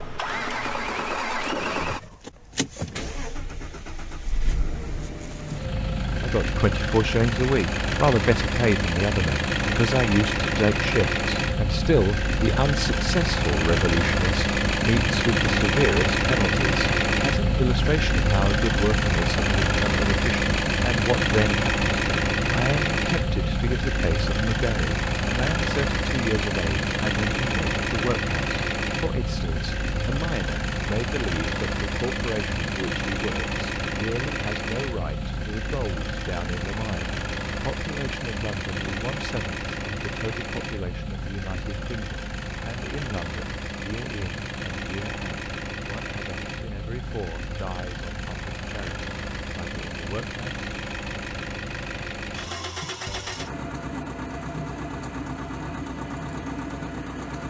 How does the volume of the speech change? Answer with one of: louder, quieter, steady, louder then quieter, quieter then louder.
quieter.